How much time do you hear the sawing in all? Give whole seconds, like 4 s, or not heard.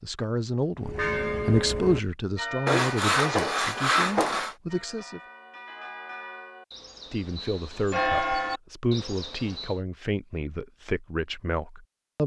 2 s.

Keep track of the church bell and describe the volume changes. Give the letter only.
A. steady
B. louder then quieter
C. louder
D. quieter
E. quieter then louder
E.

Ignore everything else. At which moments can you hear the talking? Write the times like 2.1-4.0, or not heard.
0.0-5.2, 7.1-12.2.